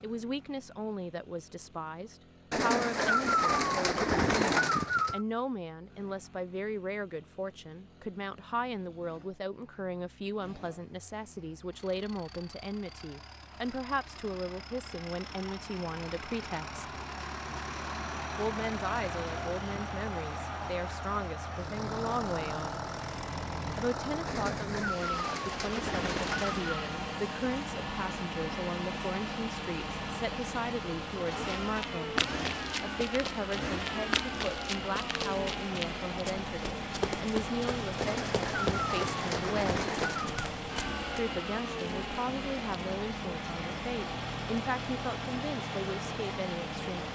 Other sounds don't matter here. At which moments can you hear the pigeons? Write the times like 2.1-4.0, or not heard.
2.5-5.2, 24.2-26.8, 38.0-40.5.